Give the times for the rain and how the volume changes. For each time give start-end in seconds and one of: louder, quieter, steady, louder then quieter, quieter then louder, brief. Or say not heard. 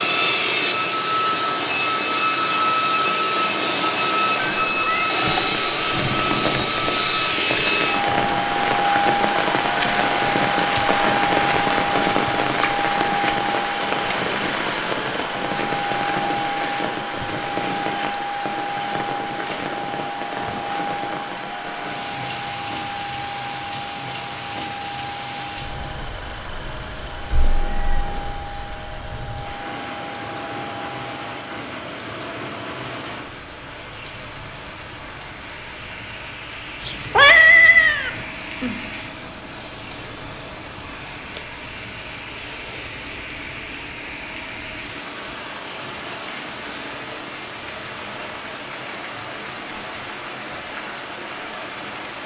0.0-52.2 quieter.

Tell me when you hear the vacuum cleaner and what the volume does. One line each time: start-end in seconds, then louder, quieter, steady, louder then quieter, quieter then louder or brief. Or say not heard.
0.0-52.2 quieter.